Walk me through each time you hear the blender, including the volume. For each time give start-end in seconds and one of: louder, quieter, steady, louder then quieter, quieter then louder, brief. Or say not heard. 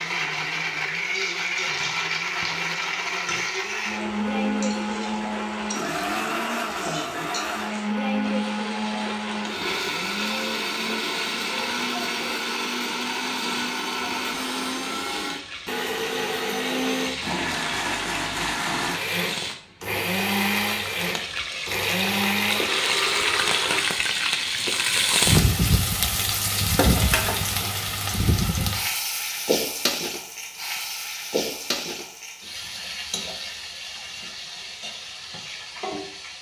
0.0-23.8 steady.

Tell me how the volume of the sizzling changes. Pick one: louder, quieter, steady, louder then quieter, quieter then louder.
louder then quieter.